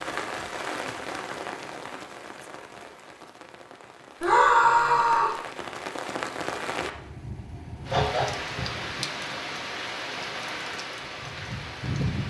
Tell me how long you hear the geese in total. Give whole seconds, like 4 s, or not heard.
2 s.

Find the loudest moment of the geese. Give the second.
8 s.